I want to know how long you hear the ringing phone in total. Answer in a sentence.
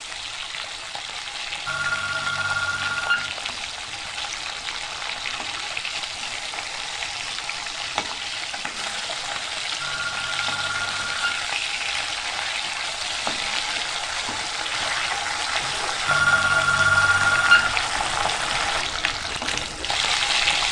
You can hear the ringing phone for 5 seconds altogether.